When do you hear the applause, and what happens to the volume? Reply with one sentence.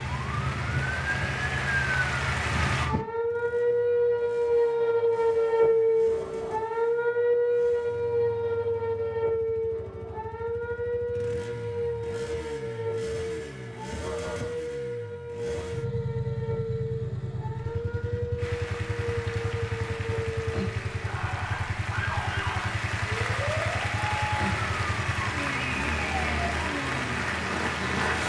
The applause can be heard briefly from 0.0 to 2.9 s; and from 18.4 to 28.2 s, getting louder.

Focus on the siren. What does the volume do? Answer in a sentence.
The loudness of the siren goes down.